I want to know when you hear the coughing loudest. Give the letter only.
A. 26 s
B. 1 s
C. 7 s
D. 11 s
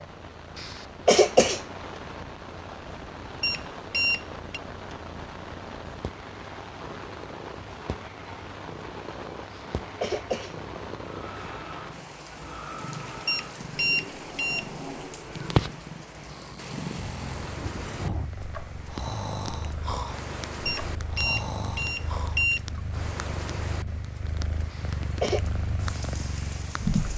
B.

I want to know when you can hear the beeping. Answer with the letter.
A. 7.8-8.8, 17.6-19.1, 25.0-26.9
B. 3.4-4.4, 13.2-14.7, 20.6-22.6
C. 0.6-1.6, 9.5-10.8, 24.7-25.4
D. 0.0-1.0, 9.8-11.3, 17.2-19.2
B.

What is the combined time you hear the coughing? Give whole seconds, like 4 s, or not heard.
3 s.